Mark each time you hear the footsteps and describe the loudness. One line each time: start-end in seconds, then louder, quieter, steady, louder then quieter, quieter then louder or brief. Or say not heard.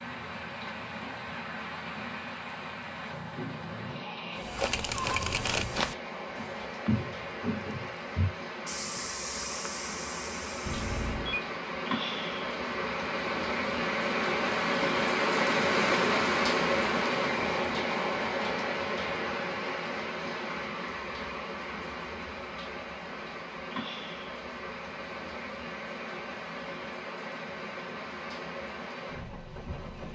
4.3-11.2 quieter.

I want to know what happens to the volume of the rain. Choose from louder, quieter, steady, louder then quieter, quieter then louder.
louder then quieter.